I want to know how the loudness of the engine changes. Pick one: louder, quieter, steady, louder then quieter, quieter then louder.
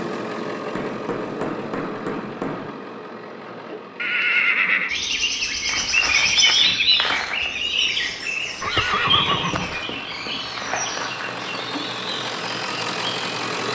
quieter then louder.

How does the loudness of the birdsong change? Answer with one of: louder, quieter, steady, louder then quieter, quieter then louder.
quieter.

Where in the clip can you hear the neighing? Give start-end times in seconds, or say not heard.
4.0-4.9, 8.6-9.9.